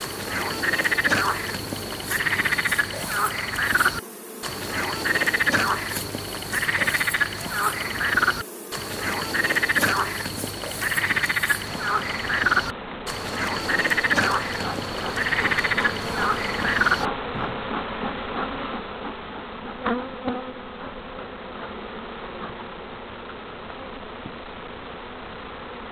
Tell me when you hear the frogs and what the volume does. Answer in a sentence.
You can hear the frogs from 0.0 to 17.6 s, at a steady volume.